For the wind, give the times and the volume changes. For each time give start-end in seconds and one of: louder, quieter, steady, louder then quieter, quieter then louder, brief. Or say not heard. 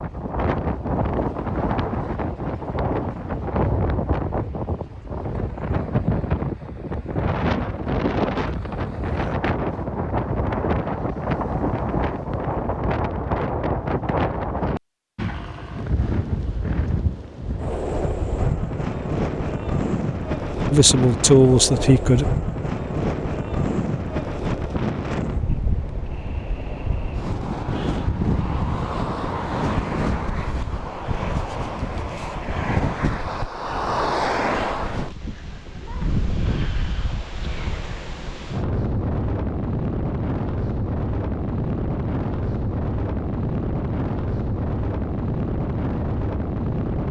0.0-47.0 steady.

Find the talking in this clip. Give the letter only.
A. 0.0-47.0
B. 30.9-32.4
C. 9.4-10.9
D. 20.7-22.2
D.